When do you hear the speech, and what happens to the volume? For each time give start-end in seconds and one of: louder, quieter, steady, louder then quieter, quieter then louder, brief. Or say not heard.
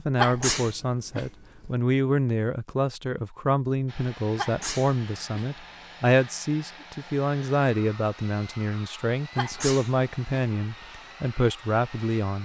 0.0-12.4 steady.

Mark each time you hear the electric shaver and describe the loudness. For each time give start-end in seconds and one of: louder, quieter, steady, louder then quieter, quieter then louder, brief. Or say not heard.
not heard.